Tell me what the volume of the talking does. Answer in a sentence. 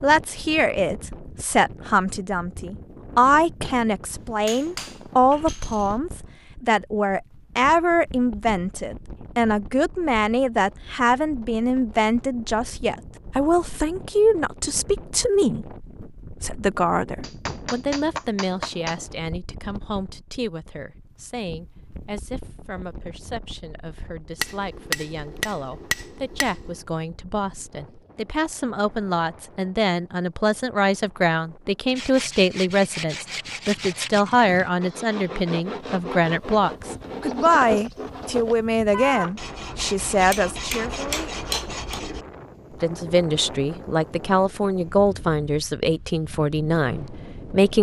The loudness of the talking goes down, then up.